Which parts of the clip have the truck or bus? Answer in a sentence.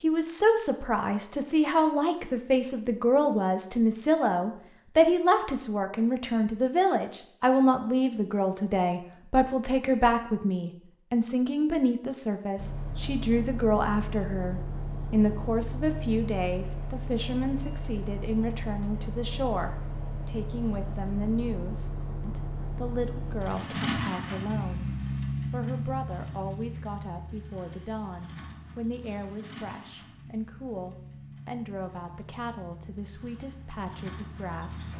The truck or bus can be heard from 12.6 to 34.9 s.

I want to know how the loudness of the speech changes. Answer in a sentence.
The volume of the speech goes down.